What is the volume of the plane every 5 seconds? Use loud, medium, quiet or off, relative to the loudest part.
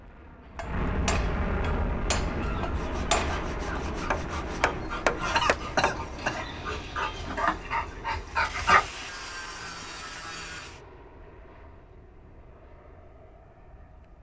loud, medium, quiet.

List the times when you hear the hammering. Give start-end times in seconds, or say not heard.
0.6-6.0.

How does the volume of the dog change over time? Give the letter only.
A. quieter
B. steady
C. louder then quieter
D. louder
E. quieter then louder
D.